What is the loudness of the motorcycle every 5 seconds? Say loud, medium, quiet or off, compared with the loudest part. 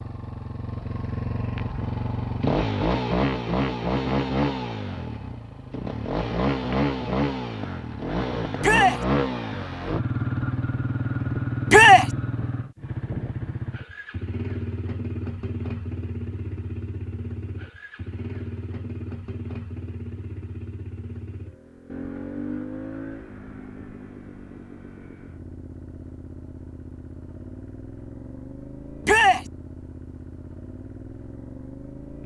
loud, loud, loud, medium, medium, quiet, quiet.